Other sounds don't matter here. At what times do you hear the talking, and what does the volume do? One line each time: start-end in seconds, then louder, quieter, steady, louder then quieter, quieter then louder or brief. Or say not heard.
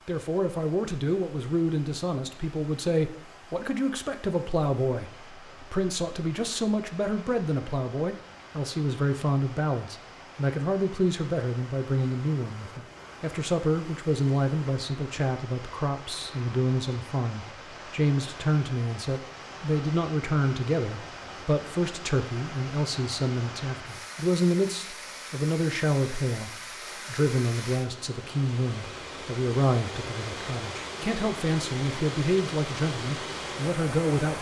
0.1-34.3 steady.